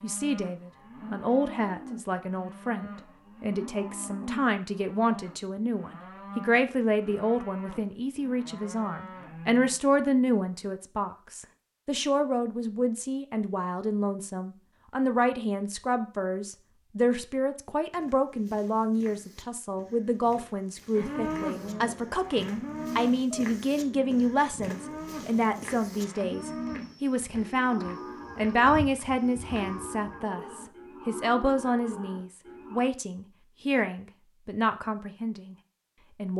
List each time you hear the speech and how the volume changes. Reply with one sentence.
You can hear the speech from 0.0 to 36.3 s, at a steady volume.